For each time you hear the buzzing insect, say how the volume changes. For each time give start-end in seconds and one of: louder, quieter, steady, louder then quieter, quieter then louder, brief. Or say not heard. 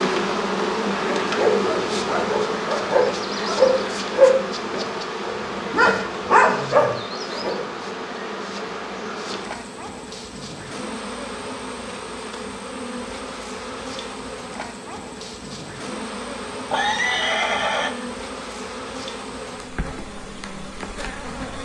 0.0-21.6 quieter.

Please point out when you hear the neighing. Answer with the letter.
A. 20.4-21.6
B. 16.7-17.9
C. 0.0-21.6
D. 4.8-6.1
B.